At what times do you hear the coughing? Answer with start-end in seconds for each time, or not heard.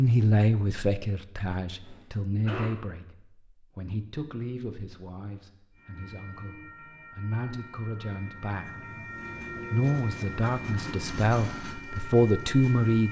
1.8-2.7.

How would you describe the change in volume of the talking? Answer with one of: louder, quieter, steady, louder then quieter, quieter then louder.
quieter then louder.